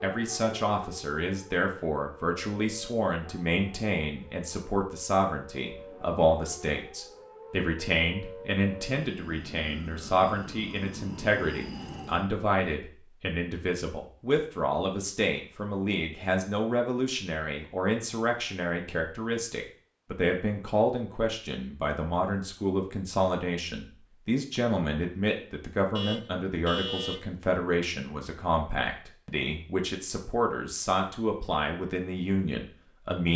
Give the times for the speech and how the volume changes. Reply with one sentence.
The speech can be heard from 0.0 to 33.3 s, at a steady volume.